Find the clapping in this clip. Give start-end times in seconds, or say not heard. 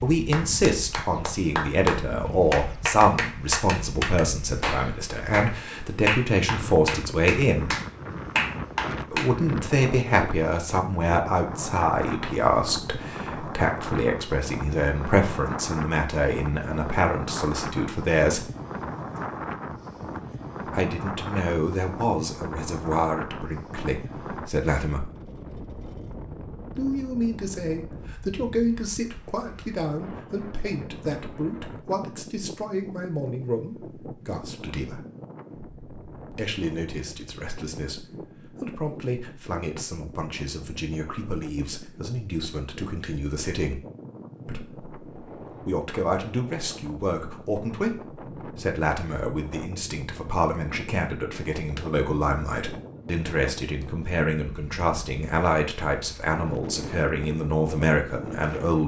0.3-9.3.